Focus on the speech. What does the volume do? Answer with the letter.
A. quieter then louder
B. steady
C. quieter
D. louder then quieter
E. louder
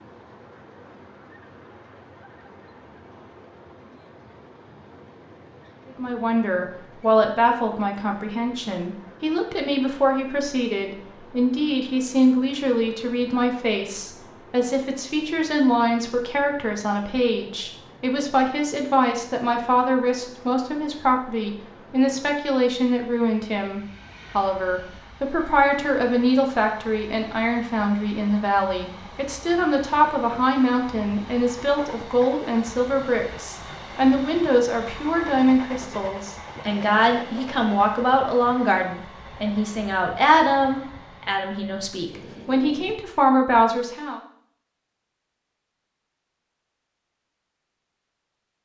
B.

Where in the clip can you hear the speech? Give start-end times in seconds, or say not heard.
5.8-44.2.